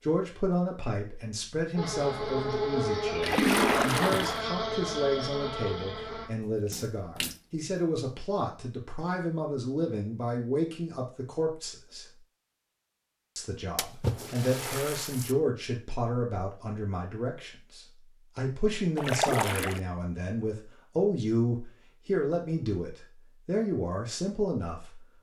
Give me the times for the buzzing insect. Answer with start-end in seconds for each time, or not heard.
1.8-6.3.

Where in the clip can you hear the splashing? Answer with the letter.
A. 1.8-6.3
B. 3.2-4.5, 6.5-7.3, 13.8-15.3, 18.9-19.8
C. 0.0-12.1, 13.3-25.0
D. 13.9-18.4
B.